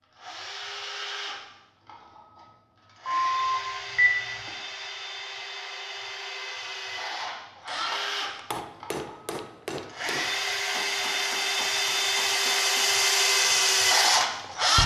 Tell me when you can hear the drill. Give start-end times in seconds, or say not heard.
0.1-14.8.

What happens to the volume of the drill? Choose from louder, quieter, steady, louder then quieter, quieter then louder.
louder.